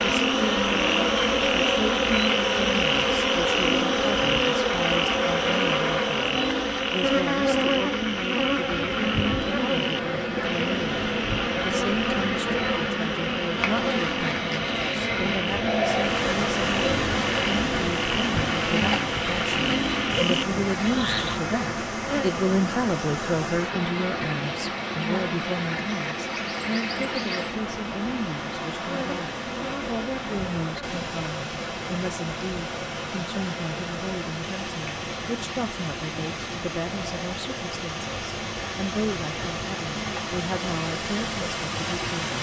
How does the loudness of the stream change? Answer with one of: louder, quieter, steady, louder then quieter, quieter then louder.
steady.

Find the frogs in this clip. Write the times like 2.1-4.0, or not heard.
0.0-21.4.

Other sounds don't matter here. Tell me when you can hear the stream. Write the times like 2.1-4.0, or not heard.
15.9-42.3.